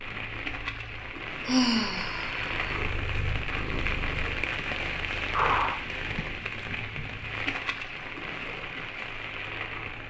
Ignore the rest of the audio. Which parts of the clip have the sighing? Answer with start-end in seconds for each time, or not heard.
1.4-2.6, 5.3-6.2.